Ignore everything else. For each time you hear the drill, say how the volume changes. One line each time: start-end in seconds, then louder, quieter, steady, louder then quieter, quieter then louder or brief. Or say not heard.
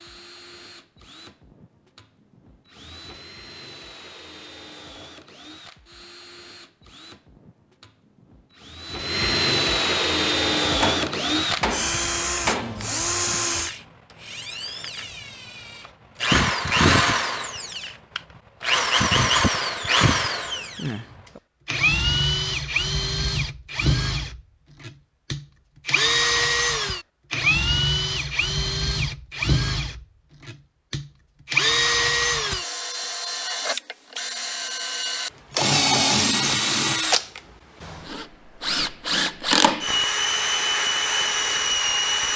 0.0-42.3 louder.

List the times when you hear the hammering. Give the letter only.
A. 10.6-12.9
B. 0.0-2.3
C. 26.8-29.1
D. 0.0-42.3
A.